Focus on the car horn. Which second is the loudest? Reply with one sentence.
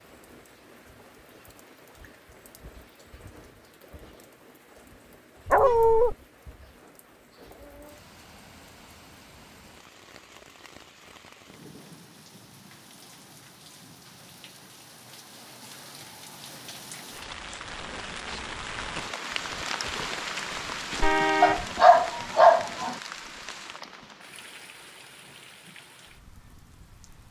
The loudest moment of the car horn is at 21 seconds.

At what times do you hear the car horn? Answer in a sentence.
The car horn can be heard from 5.5 to 6.2 s and from 21.0 to 21.6 s.